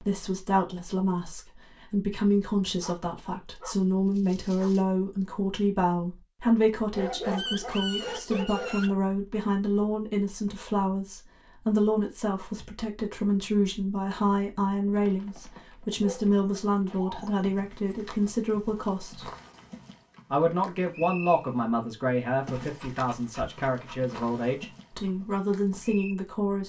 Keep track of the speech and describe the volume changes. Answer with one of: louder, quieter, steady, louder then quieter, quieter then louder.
steady.